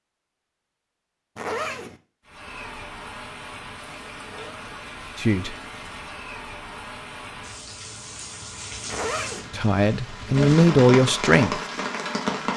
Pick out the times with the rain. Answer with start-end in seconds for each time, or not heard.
2.2-12.5.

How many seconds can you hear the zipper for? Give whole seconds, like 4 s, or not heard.
2 s.